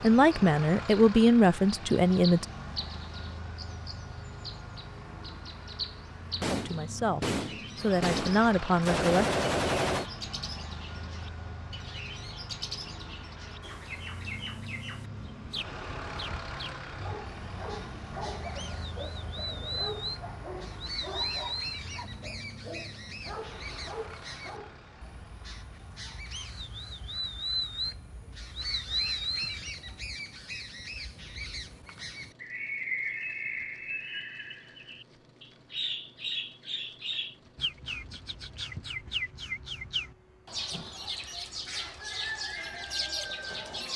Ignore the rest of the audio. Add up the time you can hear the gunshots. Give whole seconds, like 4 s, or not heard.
4 s.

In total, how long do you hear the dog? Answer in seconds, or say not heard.
8 s.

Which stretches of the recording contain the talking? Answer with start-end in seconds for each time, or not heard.
0.0-2.5, 6.5-9.3.